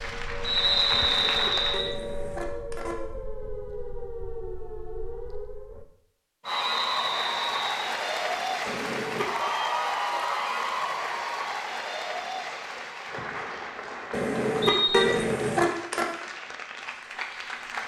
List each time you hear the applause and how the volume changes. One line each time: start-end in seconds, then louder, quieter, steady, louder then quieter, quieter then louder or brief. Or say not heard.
0.0-1.9 brief
6.5-17.8 quieter.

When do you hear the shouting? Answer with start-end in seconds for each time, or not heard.
not heard.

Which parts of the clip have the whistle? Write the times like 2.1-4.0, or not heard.
0.4-1.9, 6.5-8.0, 14.6-15.2.